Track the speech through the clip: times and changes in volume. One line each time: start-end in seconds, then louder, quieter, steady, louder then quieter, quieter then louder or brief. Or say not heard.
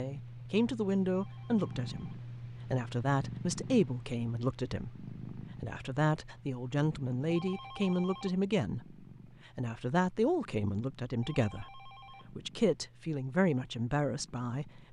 0.0-14.8 steady.